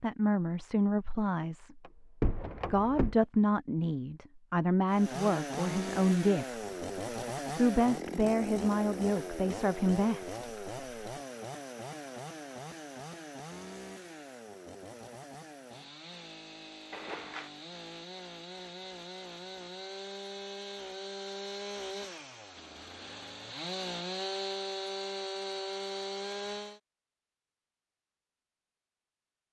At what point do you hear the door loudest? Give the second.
2 s.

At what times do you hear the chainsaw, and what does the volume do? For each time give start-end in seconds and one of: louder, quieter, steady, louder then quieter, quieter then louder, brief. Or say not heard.
4.8-26.8 quieter then louder.